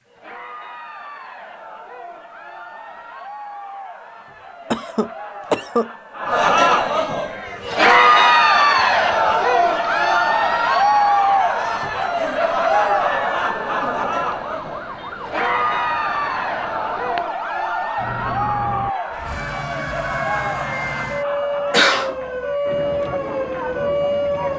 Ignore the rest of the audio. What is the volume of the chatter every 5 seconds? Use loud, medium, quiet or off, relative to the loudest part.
quiet, loud, loud, medium, quiet.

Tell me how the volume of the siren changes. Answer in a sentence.
The loudness of the siren goes up.